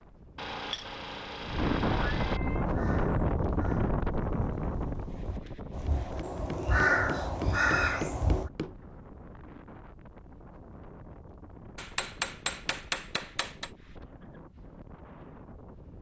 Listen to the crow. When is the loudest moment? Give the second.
7 s.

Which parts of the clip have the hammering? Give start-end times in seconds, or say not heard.
0.3-2.4, 5.8-8.8, 11.8-13.7.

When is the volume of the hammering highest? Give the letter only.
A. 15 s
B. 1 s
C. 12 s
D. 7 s
C.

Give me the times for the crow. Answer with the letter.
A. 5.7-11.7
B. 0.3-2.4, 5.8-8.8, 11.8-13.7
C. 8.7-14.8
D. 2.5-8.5
D.